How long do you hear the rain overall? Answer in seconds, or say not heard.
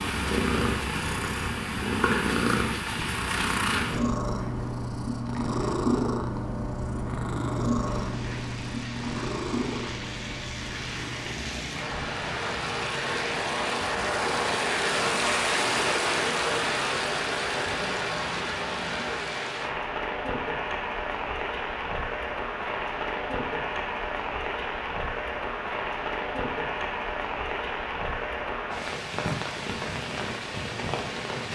24 s.